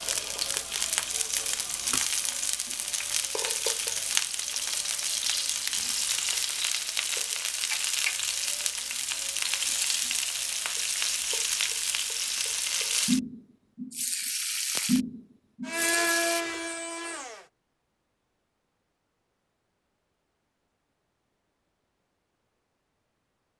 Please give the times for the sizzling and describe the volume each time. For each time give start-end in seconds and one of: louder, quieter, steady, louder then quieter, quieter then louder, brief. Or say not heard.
0.0-16.4 steady.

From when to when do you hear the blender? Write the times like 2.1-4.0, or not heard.
15.7-17.5.